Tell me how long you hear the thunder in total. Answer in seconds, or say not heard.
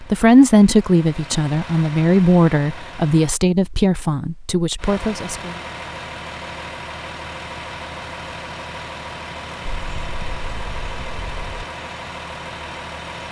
2 s.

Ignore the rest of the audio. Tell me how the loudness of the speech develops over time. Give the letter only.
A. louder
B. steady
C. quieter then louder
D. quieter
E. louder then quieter
D.